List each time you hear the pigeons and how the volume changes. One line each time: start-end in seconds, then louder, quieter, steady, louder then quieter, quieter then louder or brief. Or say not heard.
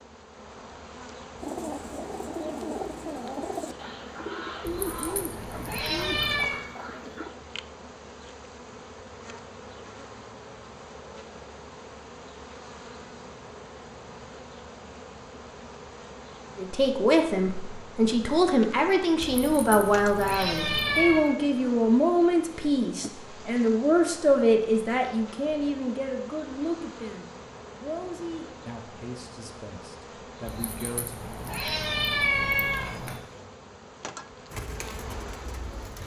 1.4-7.3 steady
34.5-36.0 brief.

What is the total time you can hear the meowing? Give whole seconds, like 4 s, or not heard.
7 s.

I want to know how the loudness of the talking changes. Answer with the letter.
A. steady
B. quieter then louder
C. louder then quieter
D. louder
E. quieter
E.